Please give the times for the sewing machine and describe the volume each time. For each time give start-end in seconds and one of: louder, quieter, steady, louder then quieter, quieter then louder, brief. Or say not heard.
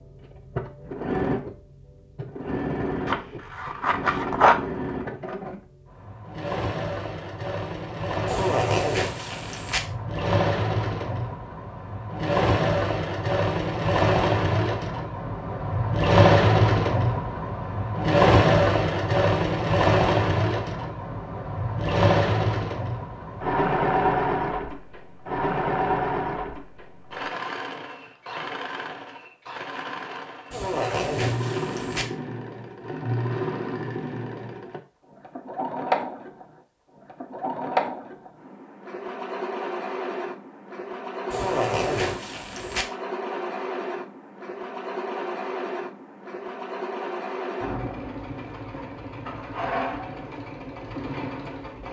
0.0-51.8 louder then quieter.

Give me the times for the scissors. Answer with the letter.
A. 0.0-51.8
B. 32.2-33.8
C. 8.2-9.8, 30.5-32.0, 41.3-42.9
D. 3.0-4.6
D.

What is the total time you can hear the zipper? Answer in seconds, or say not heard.
5 s.